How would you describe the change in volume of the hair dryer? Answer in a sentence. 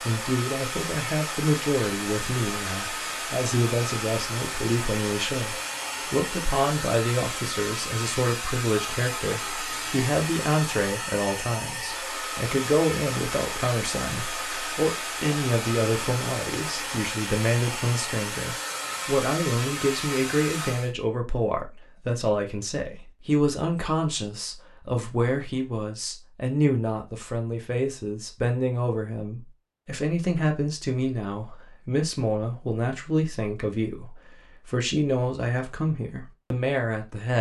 The volume of the hair dryer stays about the same.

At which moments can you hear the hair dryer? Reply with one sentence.
The hair dryer can be heard from 0.0 to 20.9 s.